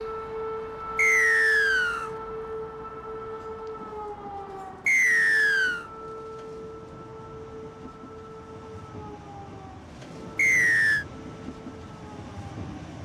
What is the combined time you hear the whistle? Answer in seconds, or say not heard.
3 s.